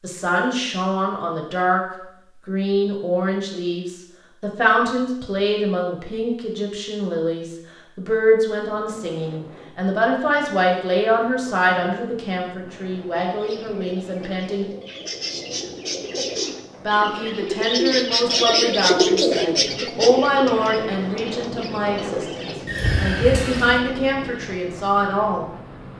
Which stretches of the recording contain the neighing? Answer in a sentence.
You can hear the neighing from 22.6 to 23.8 s.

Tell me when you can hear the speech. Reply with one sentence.
The speech can be heard from 0.0 to 1.8 s, from 2.5 to 14.7 s and from 16.9 to 25.4 s.